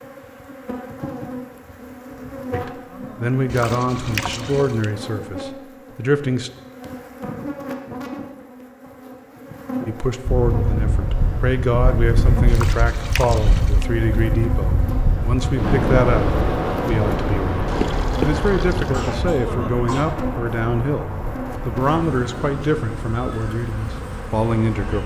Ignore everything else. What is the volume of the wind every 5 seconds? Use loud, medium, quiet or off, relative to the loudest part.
off, off, loud, loud, medium.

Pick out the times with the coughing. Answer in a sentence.
The coughing can be heard from 18.9 to 20.1 s.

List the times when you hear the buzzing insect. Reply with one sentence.
The buzzing insect can be heard from 0.0 to 25.0 s.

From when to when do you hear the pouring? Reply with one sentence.
The pouring can be heard from 3.5 to 4.9 s, from 12.4 to 13.8 s and from 17.6 to 19.0 s.